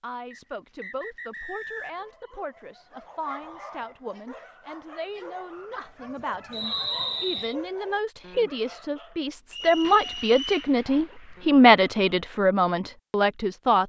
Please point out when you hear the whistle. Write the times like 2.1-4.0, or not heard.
0.3-2.1, 6.5-7.5, 9.5-10.7.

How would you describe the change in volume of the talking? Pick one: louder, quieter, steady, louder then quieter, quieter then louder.
louder.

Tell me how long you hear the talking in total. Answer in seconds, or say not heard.
14 s.